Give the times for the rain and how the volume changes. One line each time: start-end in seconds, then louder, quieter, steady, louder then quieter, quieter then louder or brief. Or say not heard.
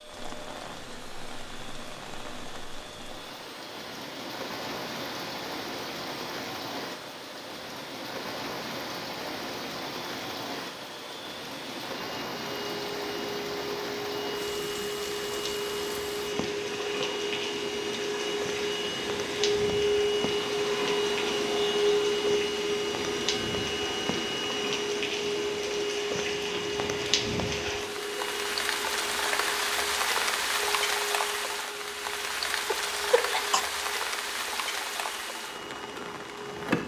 0.0-36.8 louder.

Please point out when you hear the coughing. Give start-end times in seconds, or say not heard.
32.6-33.6.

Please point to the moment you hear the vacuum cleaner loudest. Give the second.
22 s.